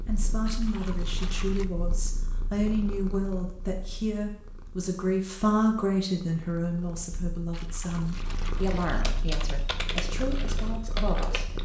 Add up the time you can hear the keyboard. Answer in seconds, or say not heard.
3 s.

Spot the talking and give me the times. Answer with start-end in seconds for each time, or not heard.
0.0-11.5.